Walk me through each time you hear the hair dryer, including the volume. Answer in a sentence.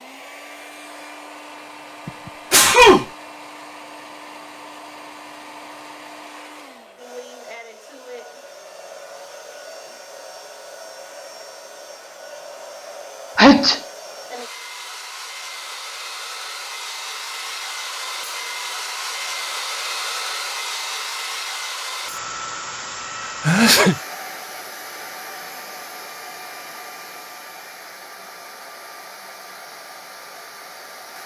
The hair dryer can be heard from 0.0 to 31.2 s, getting louder then quieter.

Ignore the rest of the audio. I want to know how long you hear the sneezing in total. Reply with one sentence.
You can hear the sneezing for 2 seconds altogether.